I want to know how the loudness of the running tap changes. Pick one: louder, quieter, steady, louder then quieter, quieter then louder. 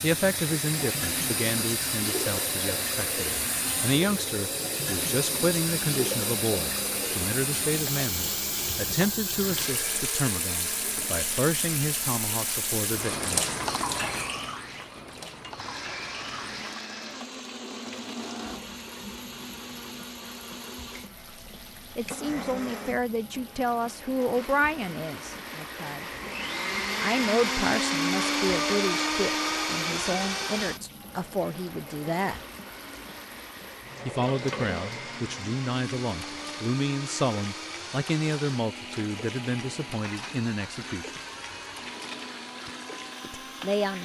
quieter.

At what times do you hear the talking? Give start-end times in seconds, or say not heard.
0.0-13.4, 21.9-26.1, 27.0-32.4, 34.0-41.2, 43.2-44.0.